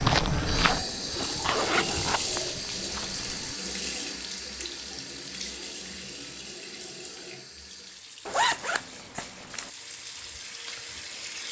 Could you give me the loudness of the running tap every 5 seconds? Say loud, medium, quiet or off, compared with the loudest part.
loud, medium, medium.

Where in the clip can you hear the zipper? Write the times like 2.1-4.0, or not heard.
1.4-2.2, 8.2-9.7.